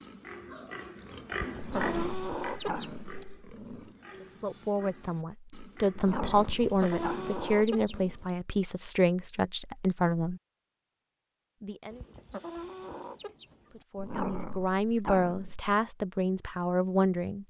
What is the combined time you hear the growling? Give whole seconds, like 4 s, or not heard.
6 s.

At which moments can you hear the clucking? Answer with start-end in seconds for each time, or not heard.
1.3-3.2, 6.3-8.3, 11.9-13.8.